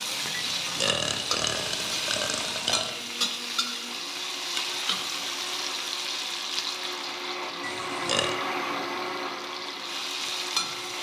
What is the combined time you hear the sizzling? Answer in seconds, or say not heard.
11 s.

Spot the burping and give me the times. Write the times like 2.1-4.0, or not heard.
0.3-3.0, 7.6-8.3.